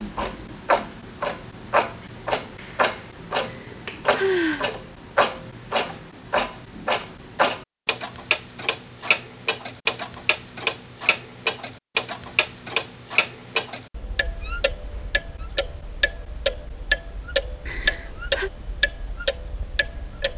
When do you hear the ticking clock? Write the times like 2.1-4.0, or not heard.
0.0-20.3.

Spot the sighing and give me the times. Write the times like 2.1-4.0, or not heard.
3.5-4.7, 17.6-18.5.